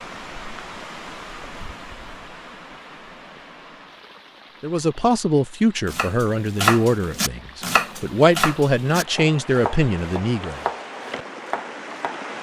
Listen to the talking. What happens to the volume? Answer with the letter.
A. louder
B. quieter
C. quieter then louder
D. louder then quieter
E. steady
C.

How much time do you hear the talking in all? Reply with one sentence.
You can hear the talking for 6 seconds altogether.